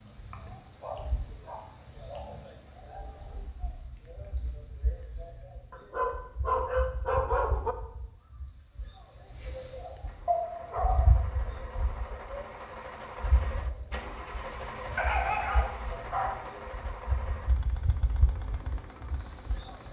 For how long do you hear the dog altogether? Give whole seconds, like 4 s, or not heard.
6 s.